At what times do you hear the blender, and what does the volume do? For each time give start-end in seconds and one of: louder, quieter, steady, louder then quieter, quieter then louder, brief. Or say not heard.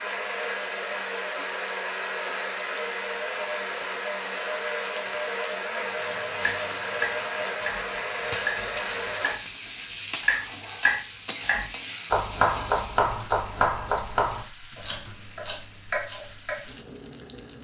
0.0-9.3 steady.